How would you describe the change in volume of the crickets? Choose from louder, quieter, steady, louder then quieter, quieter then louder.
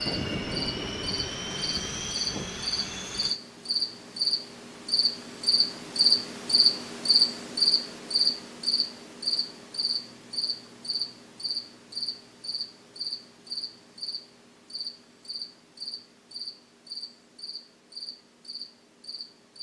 quieter.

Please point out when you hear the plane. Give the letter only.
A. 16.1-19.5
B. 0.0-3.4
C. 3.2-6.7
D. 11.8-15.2
B.